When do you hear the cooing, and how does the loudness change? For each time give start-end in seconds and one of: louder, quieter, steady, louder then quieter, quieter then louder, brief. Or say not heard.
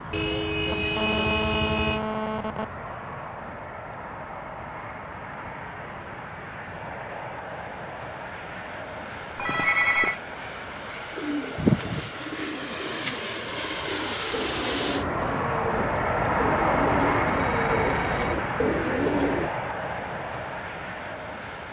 11.1-19.5 quieter then louder.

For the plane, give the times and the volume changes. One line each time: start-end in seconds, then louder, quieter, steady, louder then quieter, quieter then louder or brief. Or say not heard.
0.0-21.6 louder.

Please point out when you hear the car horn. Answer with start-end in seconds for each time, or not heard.
0.1-2.0.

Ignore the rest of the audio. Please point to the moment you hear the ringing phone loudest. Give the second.
10 s.